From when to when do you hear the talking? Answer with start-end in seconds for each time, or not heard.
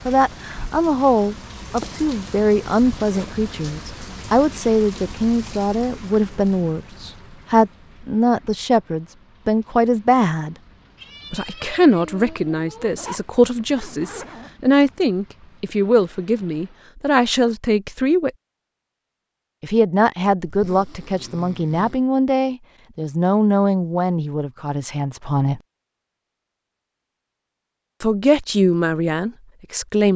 0.1-10.6, 11.3-18.3, 19.6-25.6, 28.0-30.1.